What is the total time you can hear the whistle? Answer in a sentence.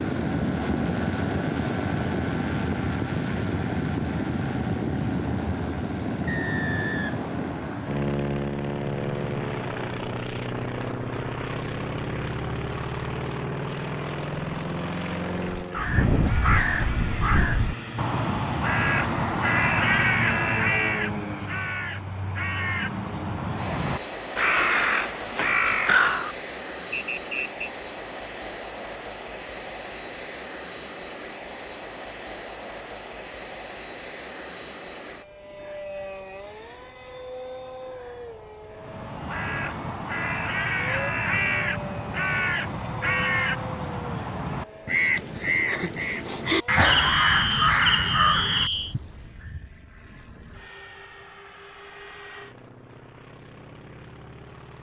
The whistle can be heard for 5 seconds in total.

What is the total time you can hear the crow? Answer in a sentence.
You can hear the crow for 22 seconds altogether.